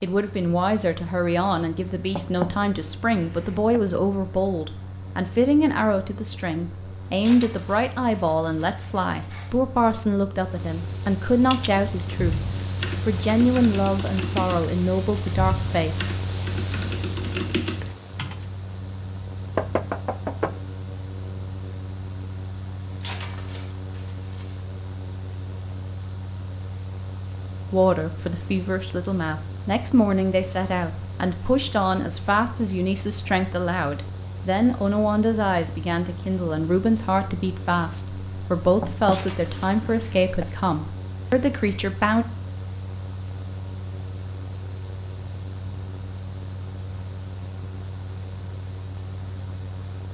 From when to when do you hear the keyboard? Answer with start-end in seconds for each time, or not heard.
11.4-18.4.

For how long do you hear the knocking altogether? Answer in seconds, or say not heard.
4 s.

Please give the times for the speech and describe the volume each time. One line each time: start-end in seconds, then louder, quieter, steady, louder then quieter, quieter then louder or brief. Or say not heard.
0.0-16.1 steady
27.7-42.2 steady.